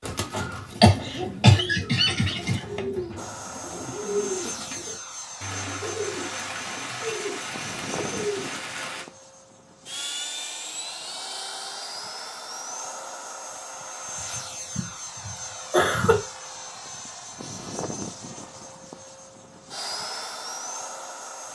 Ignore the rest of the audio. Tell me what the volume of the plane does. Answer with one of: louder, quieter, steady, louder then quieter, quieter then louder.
steady.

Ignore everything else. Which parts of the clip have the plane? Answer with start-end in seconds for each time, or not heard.
3.1-21.4.